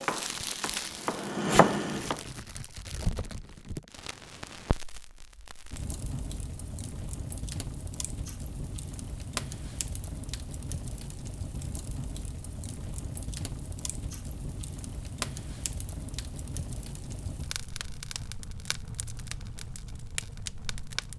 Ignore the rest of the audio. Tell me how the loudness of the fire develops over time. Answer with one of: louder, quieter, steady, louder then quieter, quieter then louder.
steady.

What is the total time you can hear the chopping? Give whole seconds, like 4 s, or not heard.
2 s.